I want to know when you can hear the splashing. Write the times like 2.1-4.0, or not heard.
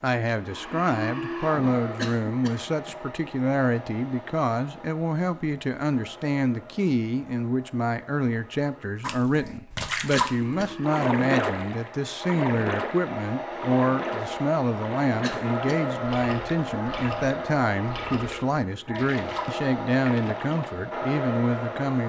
9.0-20.8.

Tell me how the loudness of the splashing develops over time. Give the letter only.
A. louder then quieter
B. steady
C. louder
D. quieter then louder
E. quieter
E.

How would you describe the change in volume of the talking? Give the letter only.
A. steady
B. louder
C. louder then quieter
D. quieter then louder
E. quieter
A.